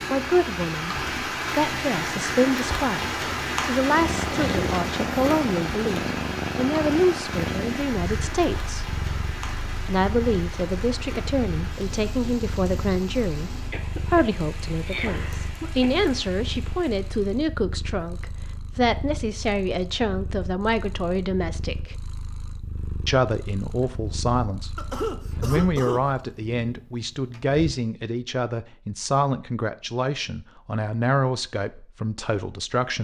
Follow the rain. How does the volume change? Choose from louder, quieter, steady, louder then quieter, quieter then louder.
quieter.